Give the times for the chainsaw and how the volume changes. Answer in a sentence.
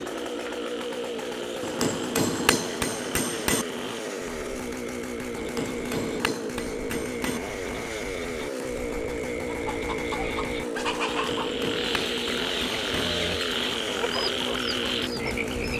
The chainsaw can be heard from 0.0 to 15.7 s, at a steady volume.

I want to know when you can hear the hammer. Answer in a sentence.
The hammer can be heard from 1.6 to 3.6 s, from 5.3 to 7.4 s and from 11.1 to 13.1 s.